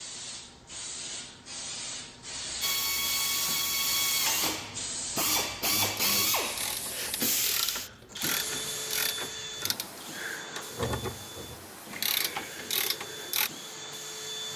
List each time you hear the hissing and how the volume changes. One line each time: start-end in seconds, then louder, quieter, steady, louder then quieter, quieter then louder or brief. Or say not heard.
0.0-14.5 quieter.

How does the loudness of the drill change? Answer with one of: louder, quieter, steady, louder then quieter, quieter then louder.
quieter.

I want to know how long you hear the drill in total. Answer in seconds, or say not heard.
12 s.